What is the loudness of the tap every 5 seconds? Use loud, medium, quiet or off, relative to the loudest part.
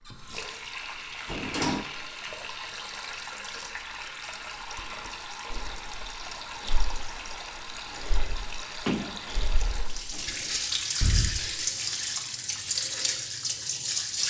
medium, medium, loud.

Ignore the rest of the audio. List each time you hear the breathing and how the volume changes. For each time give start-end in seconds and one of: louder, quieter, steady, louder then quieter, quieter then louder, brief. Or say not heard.
4.7-10.2 quieter then louder
11.0-11.7 brief.